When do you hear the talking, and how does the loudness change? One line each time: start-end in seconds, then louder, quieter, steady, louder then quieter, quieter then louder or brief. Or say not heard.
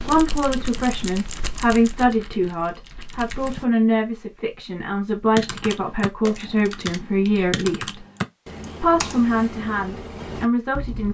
0.1-8.0 steady
8.8-11.1 brief.